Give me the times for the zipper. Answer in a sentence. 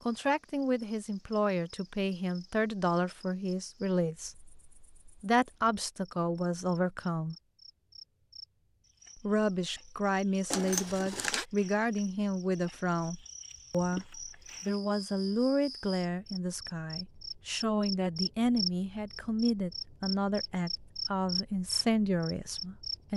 The zipper can be heard from 10.5 to 11.4 s.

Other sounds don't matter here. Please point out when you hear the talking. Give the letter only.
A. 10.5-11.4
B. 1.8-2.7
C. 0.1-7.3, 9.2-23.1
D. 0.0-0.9
C.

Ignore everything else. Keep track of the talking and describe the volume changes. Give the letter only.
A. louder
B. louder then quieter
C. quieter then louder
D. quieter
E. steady
E.